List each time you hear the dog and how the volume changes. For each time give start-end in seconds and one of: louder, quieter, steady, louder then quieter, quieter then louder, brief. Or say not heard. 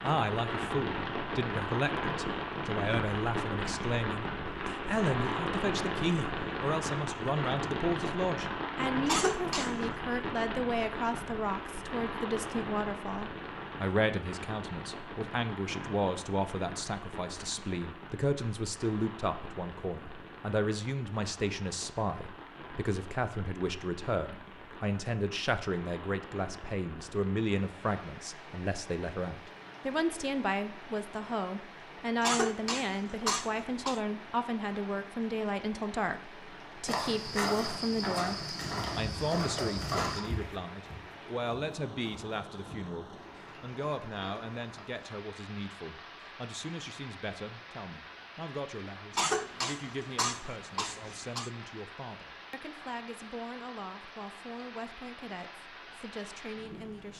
not heard.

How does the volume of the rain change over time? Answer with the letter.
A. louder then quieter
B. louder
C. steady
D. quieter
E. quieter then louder
D.